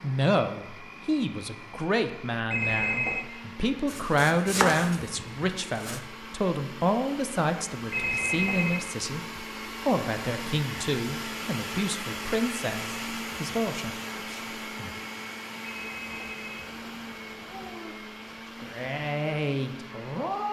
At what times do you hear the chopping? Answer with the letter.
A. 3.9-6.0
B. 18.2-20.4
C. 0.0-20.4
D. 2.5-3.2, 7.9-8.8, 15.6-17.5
A.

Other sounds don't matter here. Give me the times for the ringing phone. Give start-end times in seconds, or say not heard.
2.5-3.2, 7.9-8.8, 15.6-17.5.